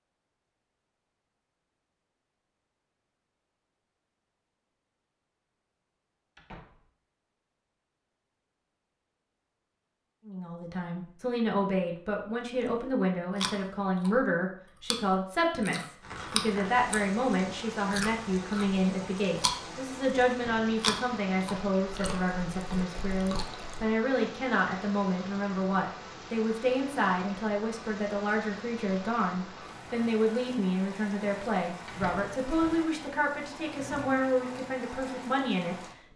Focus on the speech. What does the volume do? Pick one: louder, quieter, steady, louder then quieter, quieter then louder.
steady.